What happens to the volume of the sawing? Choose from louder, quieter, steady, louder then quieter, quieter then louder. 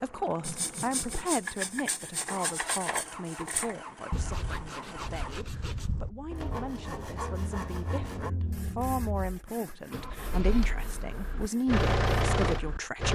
quieter.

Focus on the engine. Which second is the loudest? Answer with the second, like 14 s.
12 s.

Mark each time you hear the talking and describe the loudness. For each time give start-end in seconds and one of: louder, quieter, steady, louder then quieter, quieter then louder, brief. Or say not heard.
0.0-13.1 quieter then louder.